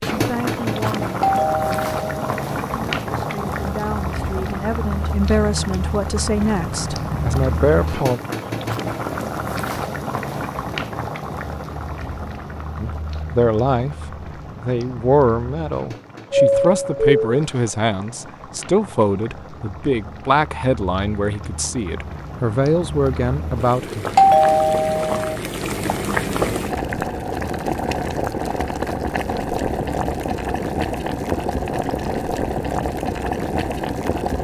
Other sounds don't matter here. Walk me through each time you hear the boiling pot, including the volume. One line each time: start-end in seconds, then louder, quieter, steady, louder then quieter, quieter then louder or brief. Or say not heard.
0.0-34.3 quieter then louder.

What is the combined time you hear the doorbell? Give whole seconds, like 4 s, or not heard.
3 s.